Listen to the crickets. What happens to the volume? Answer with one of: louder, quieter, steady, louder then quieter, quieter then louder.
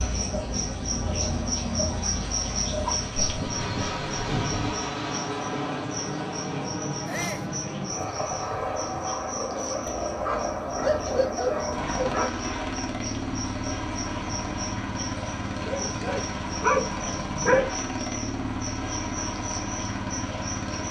quieter.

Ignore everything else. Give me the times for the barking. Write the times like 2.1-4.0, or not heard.
2.8-4.8, 10.2-12.3, 15.6-17.6.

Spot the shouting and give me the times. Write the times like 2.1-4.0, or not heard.
7.0-7.5.